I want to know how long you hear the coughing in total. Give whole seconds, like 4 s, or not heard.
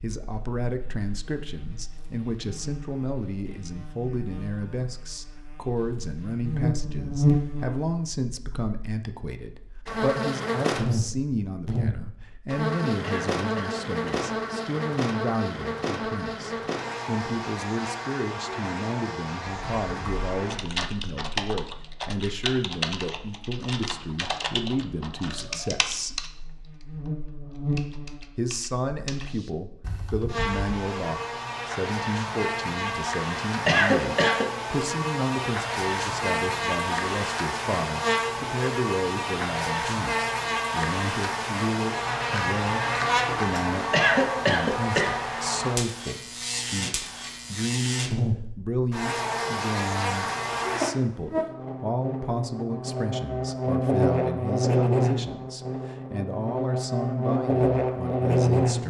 3 s.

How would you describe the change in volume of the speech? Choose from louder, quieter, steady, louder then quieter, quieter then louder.
steady.